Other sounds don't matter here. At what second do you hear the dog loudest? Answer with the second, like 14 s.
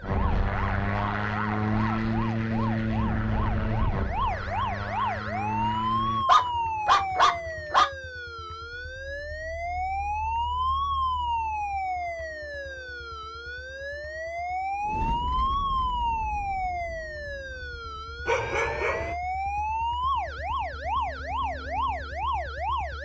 7 s.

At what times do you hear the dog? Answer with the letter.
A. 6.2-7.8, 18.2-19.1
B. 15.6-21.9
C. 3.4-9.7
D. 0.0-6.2
A.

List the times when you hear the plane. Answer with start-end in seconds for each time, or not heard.
0.0-6.2.